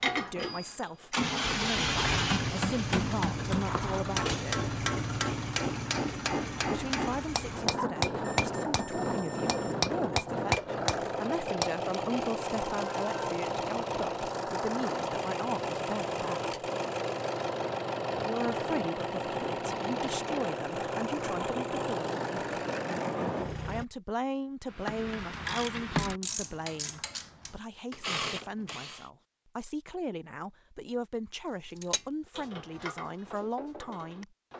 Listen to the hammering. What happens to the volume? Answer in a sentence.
The loudness of the hammering goes up.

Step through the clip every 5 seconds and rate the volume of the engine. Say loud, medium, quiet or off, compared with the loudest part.
loud, loud, loud, loud, loud, off, off.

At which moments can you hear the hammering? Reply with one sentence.
The hammering can be heard from 2.2 to 11.7 s.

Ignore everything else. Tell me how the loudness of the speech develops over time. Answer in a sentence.
The volume of the speech stays about the same.